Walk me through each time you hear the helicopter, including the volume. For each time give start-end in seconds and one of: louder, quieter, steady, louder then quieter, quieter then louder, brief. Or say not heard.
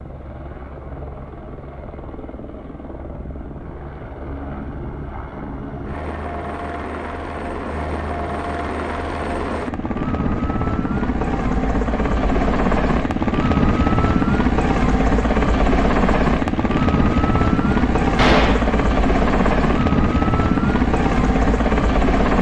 0.0-22.3 louder.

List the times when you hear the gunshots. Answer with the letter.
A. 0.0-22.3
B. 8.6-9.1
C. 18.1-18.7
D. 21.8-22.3
C.